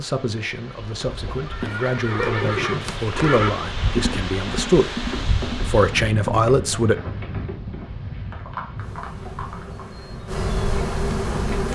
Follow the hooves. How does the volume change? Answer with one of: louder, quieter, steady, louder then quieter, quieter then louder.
quieter.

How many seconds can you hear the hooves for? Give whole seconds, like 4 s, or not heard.
9 s.